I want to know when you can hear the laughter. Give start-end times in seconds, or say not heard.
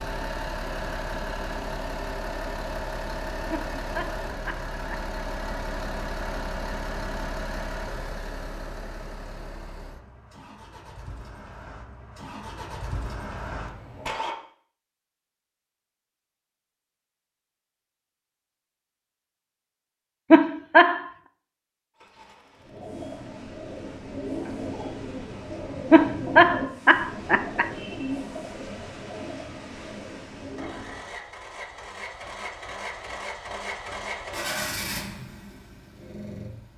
3.5-5.0, 20.3-21.1, 25.9-27.6.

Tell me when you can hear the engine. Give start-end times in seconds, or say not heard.
0.0-14.3, 21.9-36.7.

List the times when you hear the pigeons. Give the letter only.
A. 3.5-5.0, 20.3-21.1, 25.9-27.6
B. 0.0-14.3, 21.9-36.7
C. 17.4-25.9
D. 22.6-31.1
D.